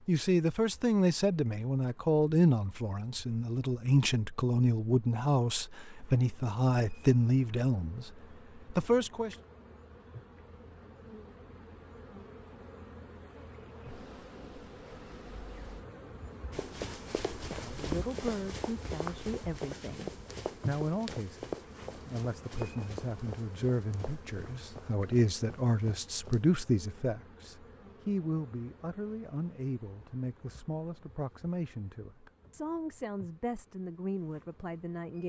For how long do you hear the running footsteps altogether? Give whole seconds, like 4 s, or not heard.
10 s.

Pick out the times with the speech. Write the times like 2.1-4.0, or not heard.
0.1-8.1, 8.7-9.3, 17.5-35.2.